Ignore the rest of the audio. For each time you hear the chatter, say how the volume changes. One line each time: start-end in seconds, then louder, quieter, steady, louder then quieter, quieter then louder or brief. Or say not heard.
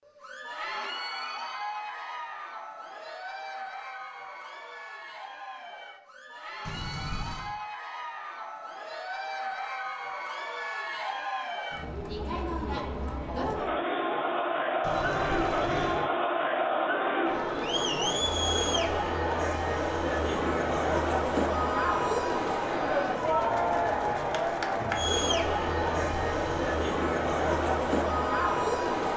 0.1-29.1 louder.